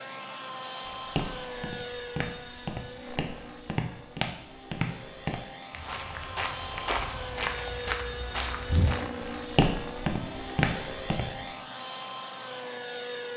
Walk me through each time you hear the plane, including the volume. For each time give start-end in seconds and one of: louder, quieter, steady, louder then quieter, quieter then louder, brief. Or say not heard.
0.0-13.3 quieter then louder.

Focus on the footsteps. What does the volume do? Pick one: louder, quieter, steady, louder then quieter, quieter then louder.
louder.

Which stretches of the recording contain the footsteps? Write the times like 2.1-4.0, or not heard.
0.9-11.5.